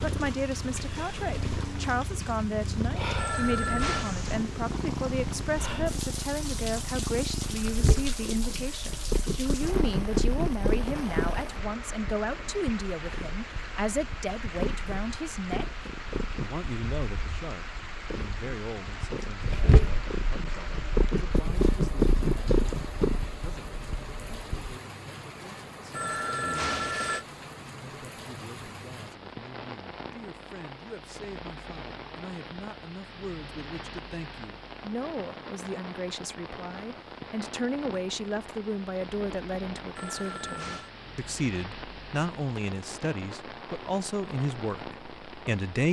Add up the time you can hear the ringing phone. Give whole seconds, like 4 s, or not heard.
3 s.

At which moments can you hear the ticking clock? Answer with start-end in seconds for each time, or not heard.
not heard.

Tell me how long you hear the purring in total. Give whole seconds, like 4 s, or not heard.
25 s.